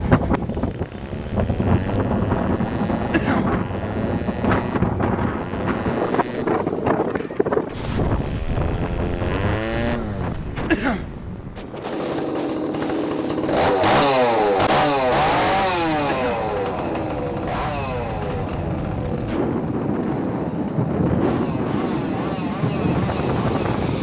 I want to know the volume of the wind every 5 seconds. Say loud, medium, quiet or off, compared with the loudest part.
loud, loud, medium, medium, loud.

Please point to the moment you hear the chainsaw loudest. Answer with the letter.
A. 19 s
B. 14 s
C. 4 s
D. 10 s
B.